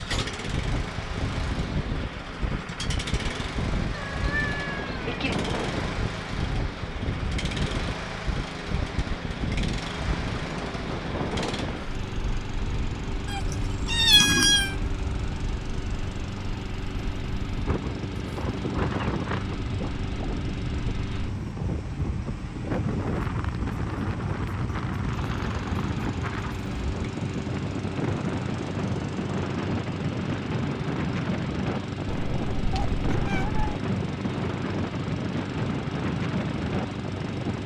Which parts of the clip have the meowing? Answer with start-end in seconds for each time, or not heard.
3.9-5.4, 13.3-14.8, 32.1-33.6.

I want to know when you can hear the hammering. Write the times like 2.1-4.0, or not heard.
not heard.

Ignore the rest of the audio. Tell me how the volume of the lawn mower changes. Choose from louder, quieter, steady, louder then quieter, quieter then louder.
steady.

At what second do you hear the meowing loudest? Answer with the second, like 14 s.
14 s.